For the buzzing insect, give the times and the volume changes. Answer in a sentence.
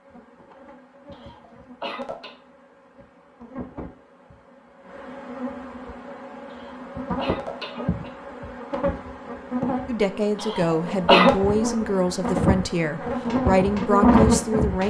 The buzzing insect can be heard from 0.0 to 14.8 s, getting louder.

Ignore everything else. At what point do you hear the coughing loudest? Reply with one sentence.
The loudest moment of the coughing is at 11 seconds.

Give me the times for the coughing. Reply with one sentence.
You can hear the coughing from 1.1 to 2.4 s, from 6.5 to 8.1 s and from 10.3 to 11.3 s.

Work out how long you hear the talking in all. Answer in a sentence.
The talking can be heard for 5 seconds in total.